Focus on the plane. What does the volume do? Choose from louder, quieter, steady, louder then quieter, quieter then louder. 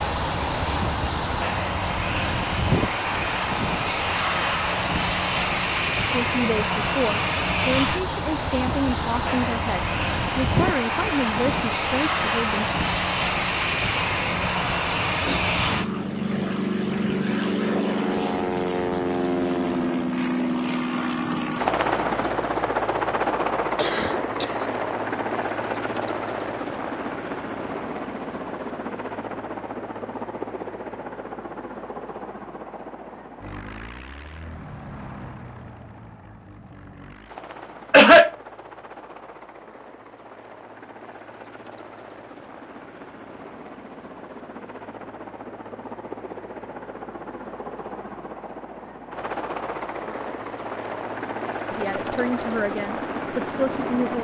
quieter then louder.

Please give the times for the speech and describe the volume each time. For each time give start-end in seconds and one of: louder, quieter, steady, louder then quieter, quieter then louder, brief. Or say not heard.
6.1-12.7 steady
51.7-54.1 brief.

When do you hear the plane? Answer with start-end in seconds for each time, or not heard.
0.0-54.1.